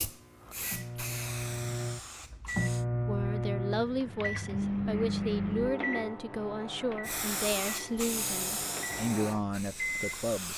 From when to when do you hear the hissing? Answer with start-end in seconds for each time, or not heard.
0.0-2.9, 7.0-10.5.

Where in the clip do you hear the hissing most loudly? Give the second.
8 s.